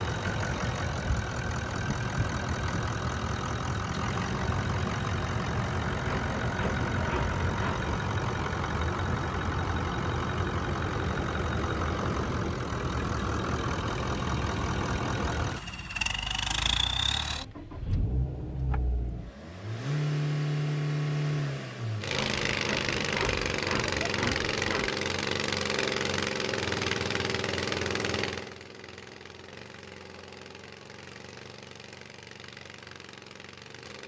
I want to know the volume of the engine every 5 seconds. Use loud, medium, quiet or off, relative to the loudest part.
loud, loud, loud, loud, loud, loud, quiet.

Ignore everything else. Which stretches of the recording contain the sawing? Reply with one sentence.
You can hear the sawing from 6.0 to 7.9 s and from 22.1 to 24.9 s.